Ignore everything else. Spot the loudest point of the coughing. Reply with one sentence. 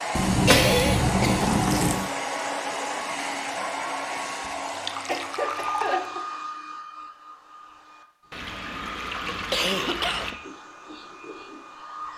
The loudest moment of the coughing is at 1 second.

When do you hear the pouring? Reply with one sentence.
The pouring can be heard from 0.1 to 2.1 s, from 4.7 to 6.1 s and from 8.3 to 10.3 s.